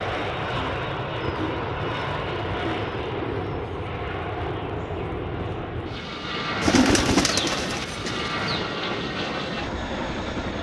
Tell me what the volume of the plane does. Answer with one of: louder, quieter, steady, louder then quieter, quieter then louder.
steady.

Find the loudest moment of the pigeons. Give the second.
7 s.